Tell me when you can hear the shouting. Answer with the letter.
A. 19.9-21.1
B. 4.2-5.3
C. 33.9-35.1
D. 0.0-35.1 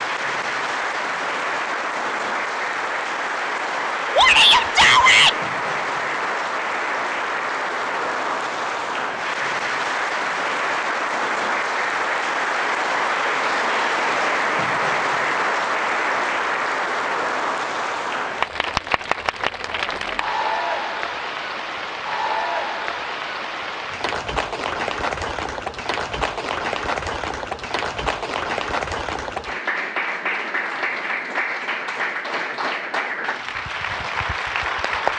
B.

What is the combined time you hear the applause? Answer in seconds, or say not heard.
35 s.